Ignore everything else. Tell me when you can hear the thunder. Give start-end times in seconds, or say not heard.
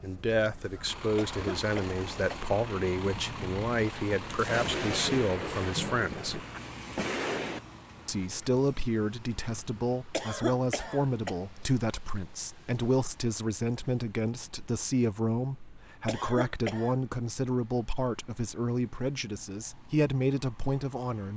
4.2-7.6.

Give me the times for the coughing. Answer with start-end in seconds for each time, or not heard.
1.1-2.5, 10.1-11.3, 16.1-16.9.